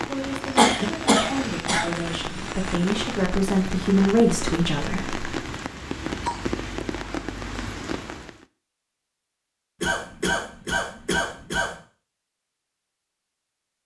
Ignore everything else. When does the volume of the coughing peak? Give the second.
1 s.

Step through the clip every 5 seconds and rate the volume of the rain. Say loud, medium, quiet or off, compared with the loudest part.
loud, loud, off.